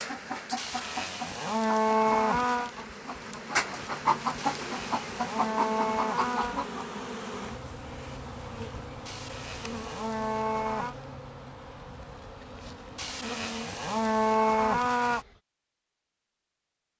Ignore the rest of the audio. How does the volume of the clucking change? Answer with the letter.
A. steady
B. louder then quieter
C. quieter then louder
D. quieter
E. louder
E.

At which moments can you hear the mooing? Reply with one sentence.
The mooing can be heard from 0.6 to 2.7 s, from 4.3 to 6.6 s, from 9.1 to 10.9 s and from 12.9 to 15.2 s.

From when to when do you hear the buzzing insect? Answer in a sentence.
The buzzing insect can be heard from 0.0 to 15.4 s.